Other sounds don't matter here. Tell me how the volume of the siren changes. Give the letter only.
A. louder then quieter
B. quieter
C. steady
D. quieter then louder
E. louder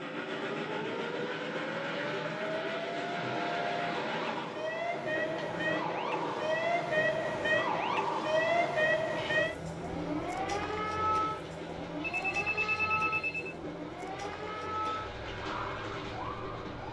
A.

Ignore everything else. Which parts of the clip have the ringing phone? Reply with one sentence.
You can hear the ringing phone from 12.0 to 13.6 s.